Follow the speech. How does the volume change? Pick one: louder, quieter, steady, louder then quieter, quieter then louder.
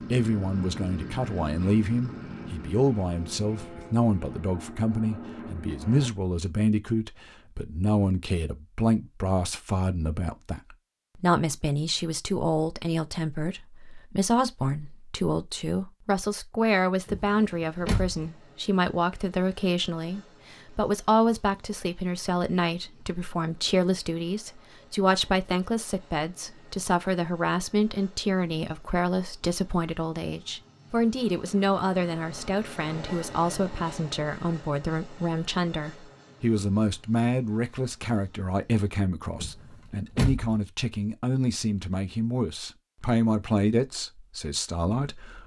steady.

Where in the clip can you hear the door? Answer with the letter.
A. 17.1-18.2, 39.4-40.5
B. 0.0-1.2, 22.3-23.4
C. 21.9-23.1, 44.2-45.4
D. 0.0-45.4
A.